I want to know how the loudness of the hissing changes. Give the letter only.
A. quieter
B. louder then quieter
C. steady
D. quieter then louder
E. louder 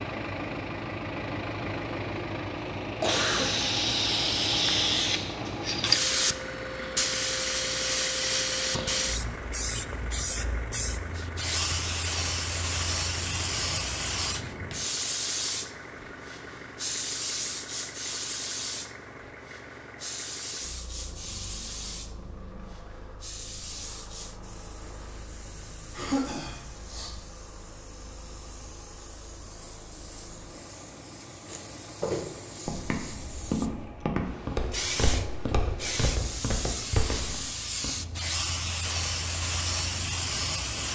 D.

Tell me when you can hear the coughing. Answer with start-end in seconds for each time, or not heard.
2.8-3.5, 25.9-27.2.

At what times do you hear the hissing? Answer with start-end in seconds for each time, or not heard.
3.0-40.8.